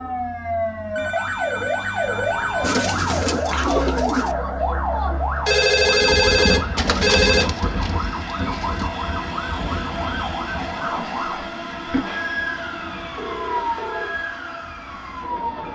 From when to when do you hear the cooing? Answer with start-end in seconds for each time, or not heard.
2.6-4.3, 6.8-8.8.